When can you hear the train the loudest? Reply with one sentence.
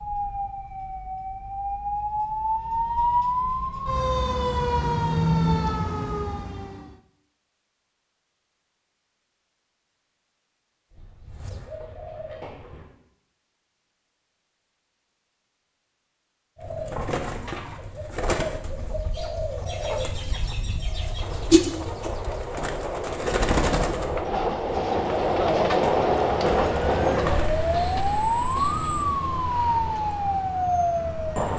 The volume of the train peaks at 26 seconds.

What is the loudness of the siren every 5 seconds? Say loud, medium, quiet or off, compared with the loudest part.
loud, loud, off, off, off, loud, loud.